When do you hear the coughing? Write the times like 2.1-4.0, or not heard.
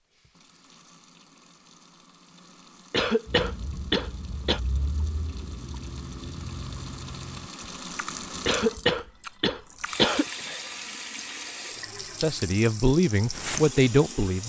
2.9-4.6, 8.4-10.2.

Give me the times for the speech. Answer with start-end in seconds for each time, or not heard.
12.2-14.4.